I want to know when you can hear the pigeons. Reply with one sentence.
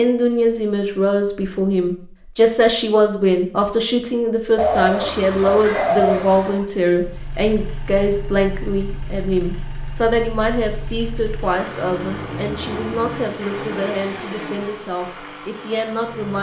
You can hear the pigeons from 4.5 to 6.7 s.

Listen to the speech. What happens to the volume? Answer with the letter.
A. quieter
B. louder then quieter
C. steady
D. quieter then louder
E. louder
A.